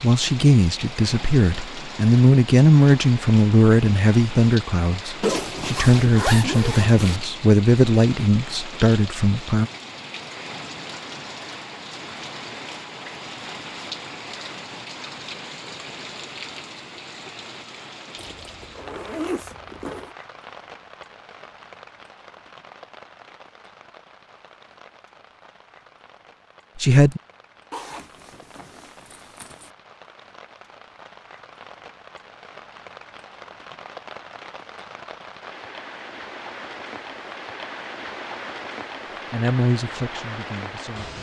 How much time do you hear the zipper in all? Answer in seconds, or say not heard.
6 s.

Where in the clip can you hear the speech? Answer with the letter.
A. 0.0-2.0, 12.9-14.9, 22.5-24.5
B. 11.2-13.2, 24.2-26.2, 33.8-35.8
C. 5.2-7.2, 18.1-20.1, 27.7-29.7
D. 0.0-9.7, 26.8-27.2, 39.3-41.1
D.